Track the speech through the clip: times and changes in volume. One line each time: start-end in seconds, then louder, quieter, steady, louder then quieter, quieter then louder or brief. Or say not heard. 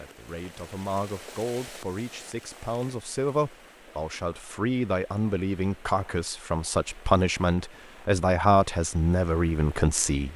0.0-10.3 louder.